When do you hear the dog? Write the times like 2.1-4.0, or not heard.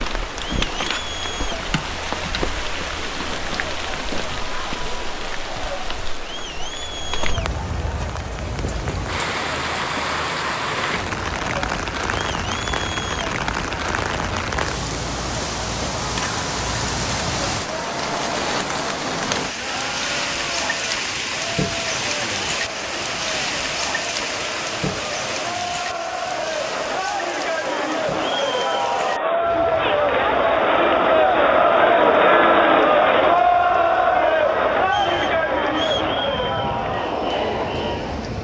not heard.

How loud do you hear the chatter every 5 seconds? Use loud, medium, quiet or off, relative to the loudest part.
quiet, quiet, quiet, quiet, quiet, medium, loud, medium.